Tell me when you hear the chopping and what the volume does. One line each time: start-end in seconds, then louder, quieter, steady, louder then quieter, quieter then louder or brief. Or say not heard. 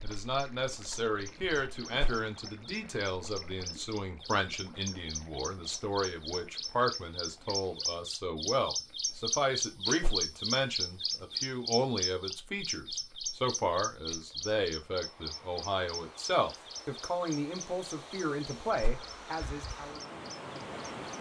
not heard.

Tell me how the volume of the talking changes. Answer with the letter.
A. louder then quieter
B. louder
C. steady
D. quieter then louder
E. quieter
C.